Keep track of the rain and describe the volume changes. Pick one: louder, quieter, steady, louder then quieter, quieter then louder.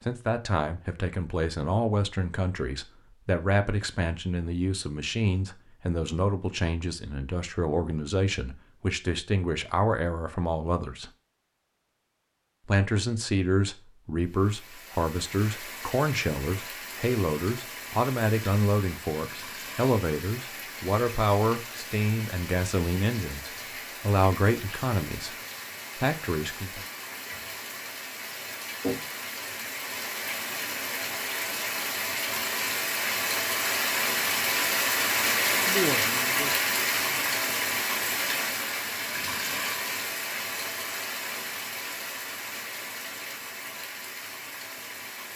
louder then quieter.